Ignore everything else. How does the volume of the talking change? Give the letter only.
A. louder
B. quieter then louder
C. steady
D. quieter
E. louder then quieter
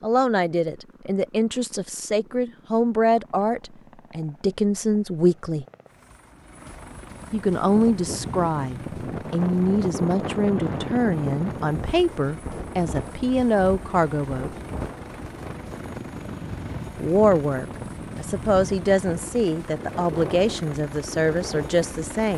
C.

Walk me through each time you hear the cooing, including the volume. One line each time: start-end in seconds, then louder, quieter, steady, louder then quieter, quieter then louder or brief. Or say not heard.
not heard.